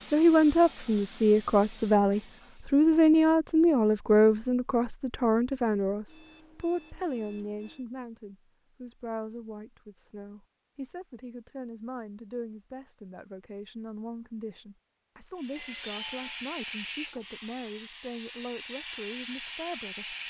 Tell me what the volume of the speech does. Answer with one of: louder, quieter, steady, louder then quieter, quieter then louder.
quieter.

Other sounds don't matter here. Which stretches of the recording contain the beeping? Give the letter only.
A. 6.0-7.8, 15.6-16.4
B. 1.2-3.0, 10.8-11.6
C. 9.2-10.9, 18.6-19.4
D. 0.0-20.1
A.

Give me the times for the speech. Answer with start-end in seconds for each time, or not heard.
0.0-20.1.